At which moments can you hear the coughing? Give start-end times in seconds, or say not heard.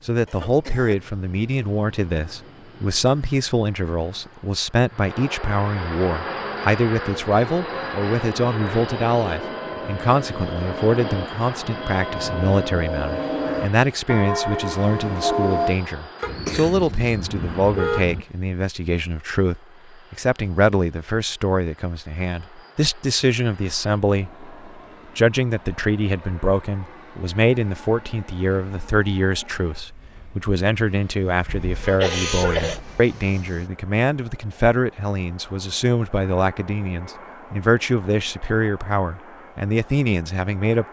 0.2-0.9, 16.2-17.2, 31.9-32.8.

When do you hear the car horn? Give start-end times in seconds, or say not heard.
16.2-18.2, 31.4-33.0.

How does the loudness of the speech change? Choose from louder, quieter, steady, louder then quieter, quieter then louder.
steady.